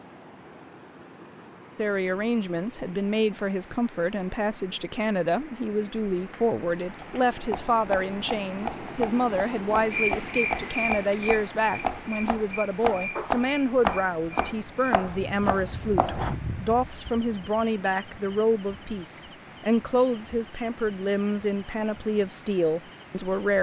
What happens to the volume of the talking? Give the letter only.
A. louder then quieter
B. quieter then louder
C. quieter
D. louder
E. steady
E.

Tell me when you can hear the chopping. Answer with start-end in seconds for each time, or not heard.
5.9-16.4.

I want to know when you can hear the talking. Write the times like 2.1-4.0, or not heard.
1.8-23.5.